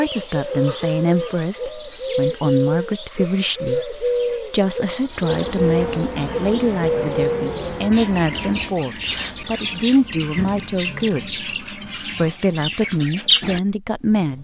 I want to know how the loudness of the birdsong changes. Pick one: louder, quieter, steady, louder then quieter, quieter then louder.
steady.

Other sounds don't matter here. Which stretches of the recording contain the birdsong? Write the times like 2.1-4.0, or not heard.
0.0-14.3.